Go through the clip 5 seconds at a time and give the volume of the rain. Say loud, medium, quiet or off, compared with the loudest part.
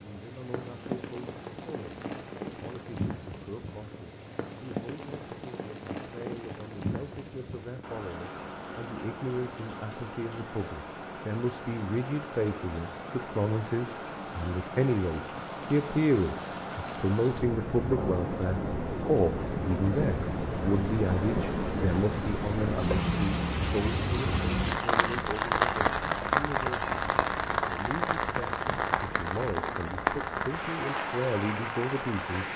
medium, medium, medium, medium, loud, loud, loud.